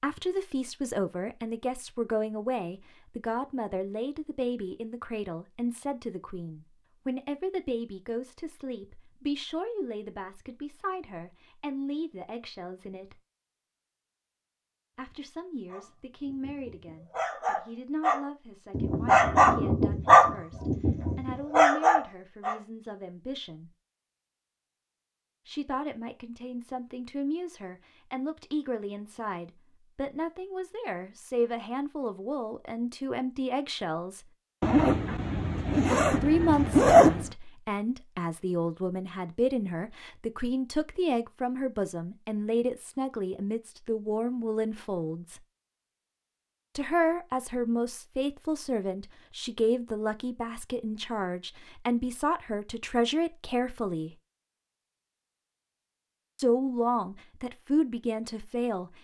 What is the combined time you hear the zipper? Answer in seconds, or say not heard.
3 s.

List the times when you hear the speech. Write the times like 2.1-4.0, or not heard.
0.0-13.2, 14.9-23.7, 25.4-34.2, 36.1-45.4, 46.8-54.1, 56.4-58.9.